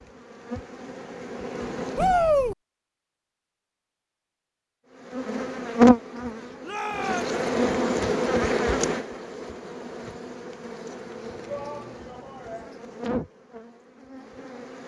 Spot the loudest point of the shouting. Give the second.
2 s.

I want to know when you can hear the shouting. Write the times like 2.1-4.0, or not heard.
1.9-2.5, 6.6-7.3, 11.4-12.8.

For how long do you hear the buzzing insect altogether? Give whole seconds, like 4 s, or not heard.
12 s.